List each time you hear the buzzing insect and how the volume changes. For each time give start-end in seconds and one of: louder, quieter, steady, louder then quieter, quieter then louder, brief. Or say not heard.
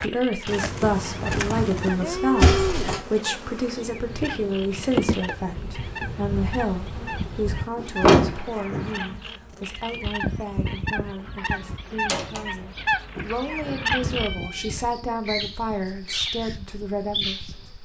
0.0-17.8 quieter.